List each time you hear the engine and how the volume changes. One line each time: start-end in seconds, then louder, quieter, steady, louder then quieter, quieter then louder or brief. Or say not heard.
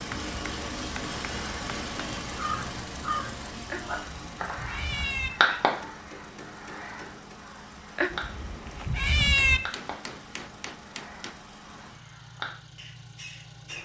0.0-13.7 quieter.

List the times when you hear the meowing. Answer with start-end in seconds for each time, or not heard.
3.7-5.3, 8.0-9.6.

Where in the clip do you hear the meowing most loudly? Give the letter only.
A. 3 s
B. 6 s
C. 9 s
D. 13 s
C.